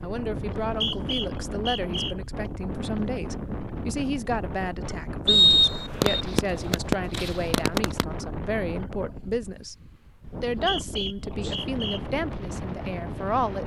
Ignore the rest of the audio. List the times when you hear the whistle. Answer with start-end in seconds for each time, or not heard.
0.7-2.1, 5.2-6.2, 10.2-12.0.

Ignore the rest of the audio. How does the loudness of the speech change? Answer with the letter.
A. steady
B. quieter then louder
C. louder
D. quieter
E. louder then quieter
A.